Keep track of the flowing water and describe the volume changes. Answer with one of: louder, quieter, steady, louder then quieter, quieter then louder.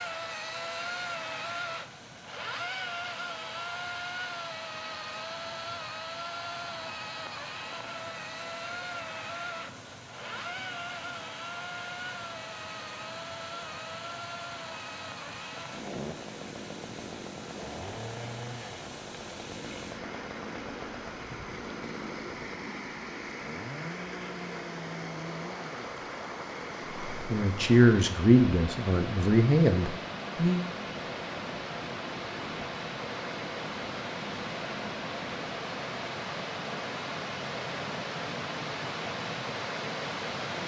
louder.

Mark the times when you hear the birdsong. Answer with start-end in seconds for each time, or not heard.
not heard.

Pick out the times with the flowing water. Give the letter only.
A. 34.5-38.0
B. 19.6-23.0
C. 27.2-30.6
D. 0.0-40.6
D.